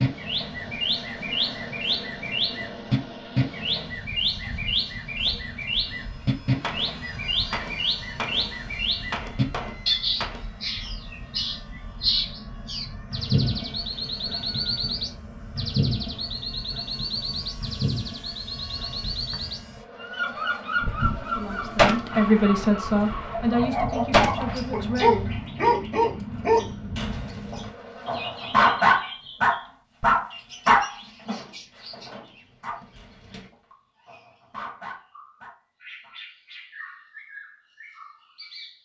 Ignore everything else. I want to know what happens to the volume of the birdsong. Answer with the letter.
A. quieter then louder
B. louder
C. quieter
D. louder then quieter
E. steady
C.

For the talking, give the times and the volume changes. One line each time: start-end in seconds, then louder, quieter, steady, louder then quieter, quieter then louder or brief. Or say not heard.
21.1-25.3 louder then quieter.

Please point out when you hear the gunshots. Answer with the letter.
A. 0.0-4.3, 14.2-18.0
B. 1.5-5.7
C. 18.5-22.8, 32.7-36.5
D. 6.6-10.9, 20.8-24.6
D.